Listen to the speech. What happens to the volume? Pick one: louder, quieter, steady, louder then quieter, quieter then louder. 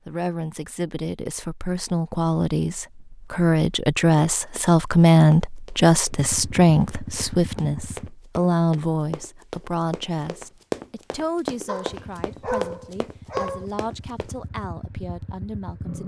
louder then quieter.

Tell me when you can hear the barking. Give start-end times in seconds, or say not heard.
11.7-13.7.